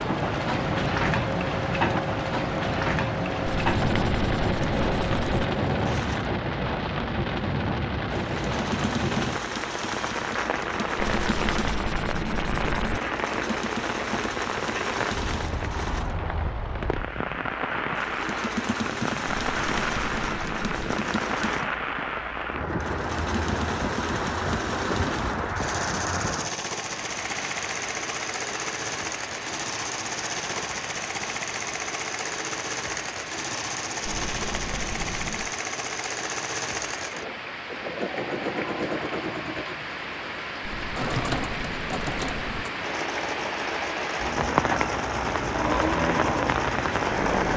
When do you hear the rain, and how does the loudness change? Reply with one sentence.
You can hear the rain from 0.0 to 47.5 s, getting quieter then louder.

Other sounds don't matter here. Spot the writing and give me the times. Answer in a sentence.
You can hear the writing from 3.5 to 5.5 s, from 10.9 to 13.0 s, from 19.2 to 21.0 s, from 34.0 to 35.5 s and from 40.6 to 42.6 s.